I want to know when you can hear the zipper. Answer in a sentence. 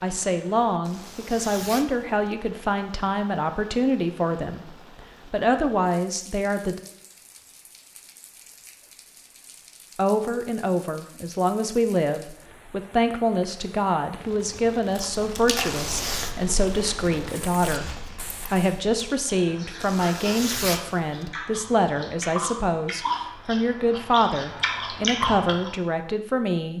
The zipper can be heard from 0.8 to 2.2 s, from 15.6 to 16.4 s and from 19.8 to 21.3 s.